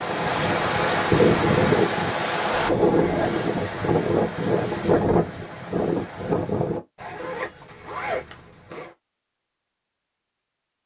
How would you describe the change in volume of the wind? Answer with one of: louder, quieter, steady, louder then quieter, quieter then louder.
quieter.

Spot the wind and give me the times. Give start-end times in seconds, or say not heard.
0.0-6.8.